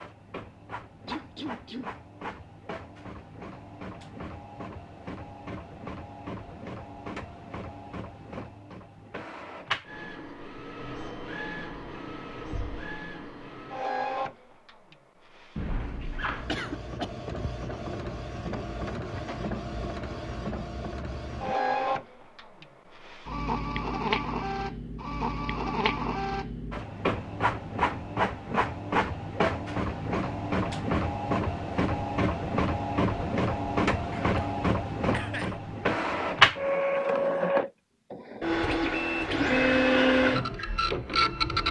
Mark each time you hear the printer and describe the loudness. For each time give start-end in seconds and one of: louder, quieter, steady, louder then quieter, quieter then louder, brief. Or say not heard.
0.0-41.6 louder.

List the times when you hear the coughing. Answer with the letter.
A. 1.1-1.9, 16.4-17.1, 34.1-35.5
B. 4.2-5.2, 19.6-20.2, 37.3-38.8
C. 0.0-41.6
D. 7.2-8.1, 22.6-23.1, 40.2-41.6
A.